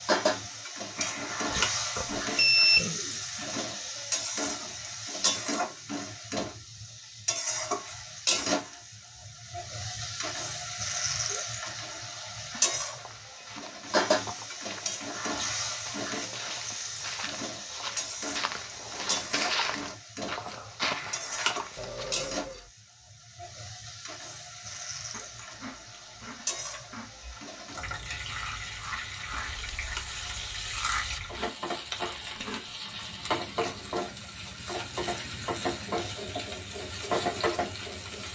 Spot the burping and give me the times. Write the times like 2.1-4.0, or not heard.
1.5-3.2, 21.8-22.7.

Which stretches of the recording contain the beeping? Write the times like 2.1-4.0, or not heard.
0.9-2.8, 20.8-21.5, 29.3-30.4.